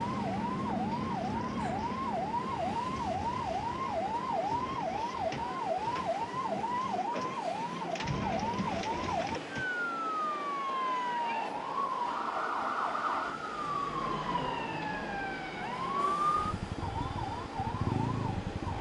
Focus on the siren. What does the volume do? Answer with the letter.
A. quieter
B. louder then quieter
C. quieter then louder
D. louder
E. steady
E.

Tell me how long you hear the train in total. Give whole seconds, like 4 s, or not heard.
19 s.